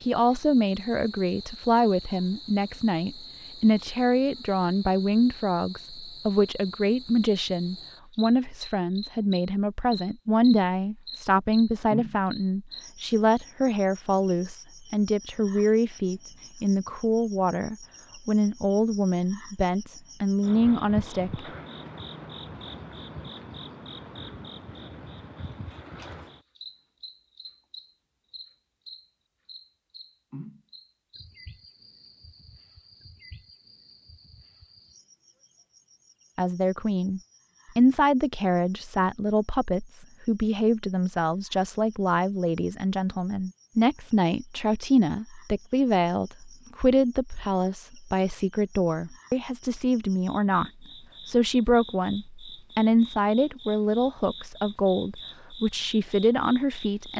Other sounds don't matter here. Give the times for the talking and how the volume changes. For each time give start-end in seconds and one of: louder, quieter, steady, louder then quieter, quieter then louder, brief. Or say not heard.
0.0-21.4 steady
36.4-57.1 steady.